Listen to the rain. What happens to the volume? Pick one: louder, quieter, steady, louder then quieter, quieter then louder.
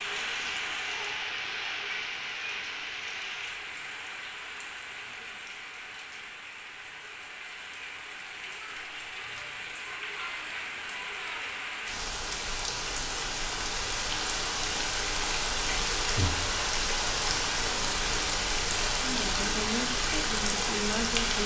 quieter then louder.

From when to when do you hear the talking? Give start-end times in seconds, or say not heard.
18.9-21.4.